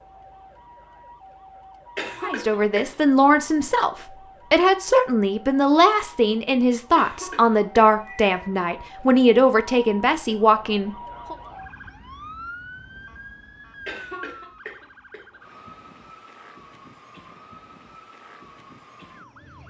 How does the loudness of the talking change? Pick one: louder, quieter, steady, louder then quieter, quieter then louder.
steady.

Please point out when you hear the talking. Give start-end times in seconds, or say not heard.
2.2-11.3.